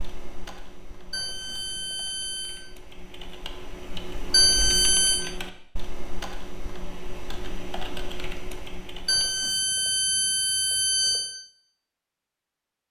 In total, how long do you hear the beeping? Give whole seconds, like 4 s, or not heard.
5 s.